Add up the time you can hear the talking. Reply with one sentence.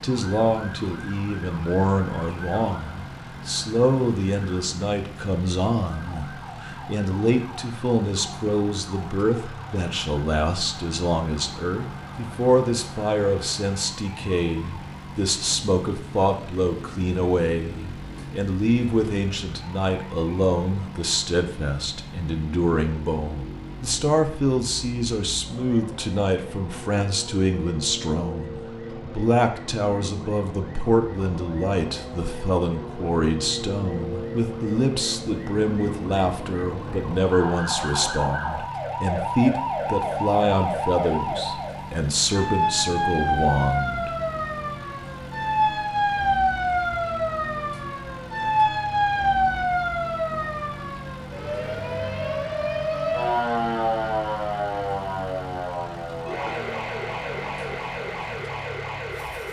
The talking can be heard for 44 seconds in total.